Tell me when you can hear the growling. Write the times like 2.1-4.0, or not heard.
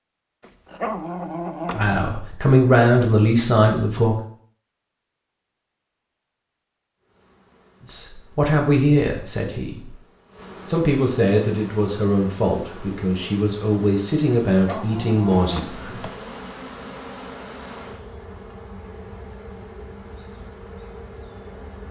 0.4-2.0, 14.6-15.7.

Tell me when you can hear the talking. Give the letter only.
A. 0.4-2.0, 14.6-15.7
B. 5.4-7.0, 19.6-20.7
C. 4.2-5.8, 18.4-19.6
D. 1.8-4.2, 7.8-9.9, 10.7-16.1
D.